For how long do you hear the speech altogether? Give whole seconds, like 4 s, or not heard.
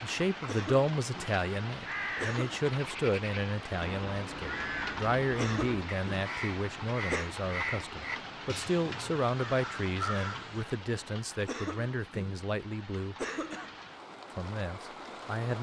14 s.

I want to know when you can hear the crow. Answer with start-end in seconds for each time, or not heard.
1.9-10.7.